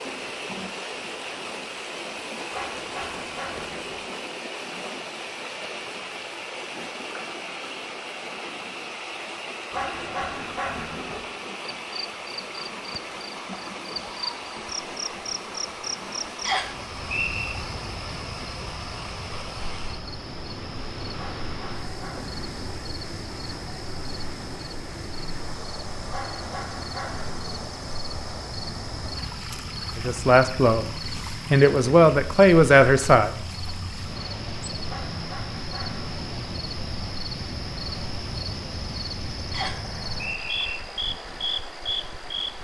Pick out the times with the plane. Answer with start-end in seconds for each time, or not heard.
not heard.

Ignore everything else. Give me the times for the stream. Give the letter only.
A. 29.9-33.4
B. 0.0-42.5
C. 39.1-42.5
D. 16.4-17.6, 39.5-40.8
B.